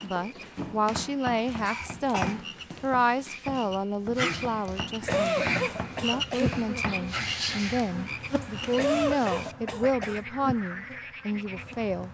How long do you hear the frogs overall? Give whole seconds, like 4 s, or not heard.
12 s.